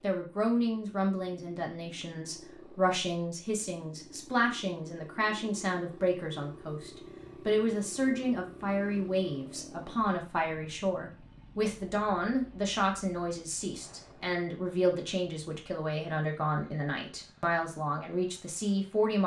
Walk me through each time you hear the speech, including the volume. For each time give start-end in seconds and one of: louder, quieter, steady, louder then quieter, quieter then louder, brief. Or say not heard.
0.0-19.2 steady.